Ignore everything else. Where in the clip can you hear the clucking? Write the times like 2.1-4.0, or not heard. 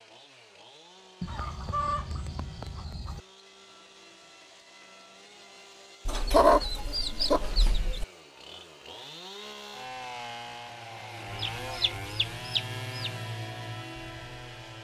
1.2-3.2, 6.0-8.1, 11.4-13.1.